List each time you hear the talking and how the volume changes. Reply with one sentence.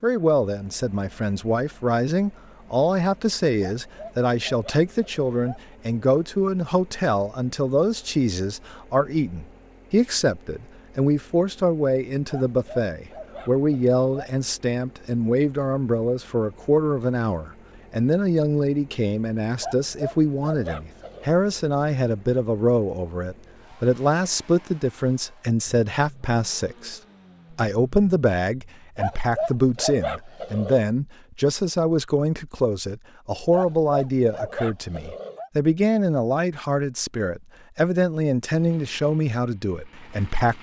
The talking can be heard from 0.0 to 40.5 s, at a steady volume.